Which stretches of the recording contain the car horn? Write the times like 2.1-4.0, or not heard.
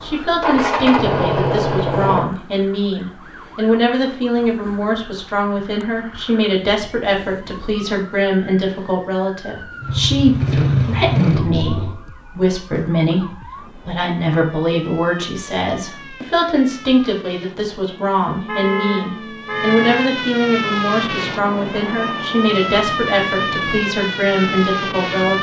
18.2-19.9.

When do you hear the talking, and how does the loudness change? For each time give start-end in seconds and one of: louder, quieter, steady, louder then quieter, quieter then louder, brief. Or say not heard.
0.0-25.3 steady.